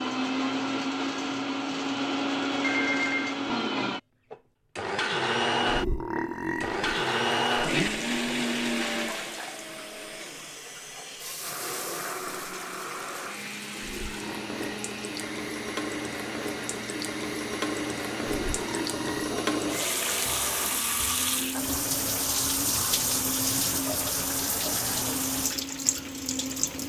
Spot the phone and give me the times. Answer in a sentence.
You can hear the phone from 2.6 to 3.4 s.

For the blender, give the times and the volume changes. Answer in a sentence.
You can hear the blender from 0.0 to 26.8 s, getting quieter.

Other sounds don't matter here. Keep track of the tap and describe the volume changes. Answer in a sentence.
The loudness of the tap goes up.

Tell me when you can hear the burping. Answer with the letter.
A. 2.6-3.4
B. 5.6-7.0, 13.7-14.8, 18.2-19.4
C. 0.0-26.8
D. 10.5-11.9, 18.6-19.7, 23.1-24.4
B.